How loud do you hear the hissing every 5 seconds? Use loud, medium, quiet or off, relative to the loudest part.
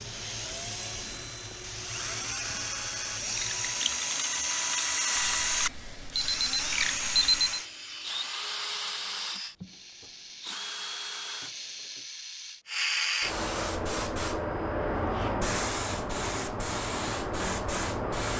quiet, quiet, loud, loud.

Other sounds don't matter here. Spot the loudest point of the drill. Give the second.
5 s.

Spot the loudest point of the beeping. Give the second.
7 s.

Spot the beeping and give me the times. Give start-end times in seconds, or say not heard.
5.2-7.6.